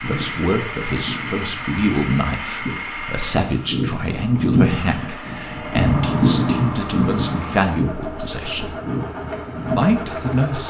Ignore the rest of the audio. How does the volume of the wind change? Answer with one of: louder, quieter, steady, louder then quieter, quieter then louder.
louder then quieter.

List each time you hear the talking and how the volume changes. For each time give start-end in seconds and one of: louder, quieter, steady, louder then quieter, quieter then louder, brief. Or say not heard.
0.0-8.8 steady
9.8-10.6 brief.